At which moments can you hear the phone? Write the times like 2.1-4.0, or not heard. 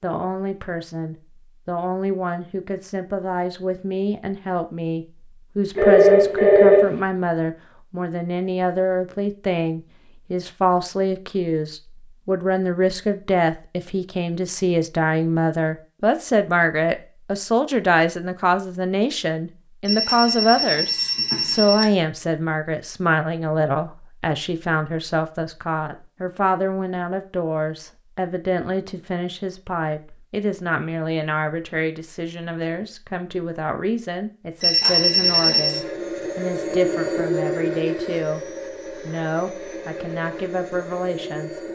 5.8-7.0, 19.9-21.9, 34.6-35.8.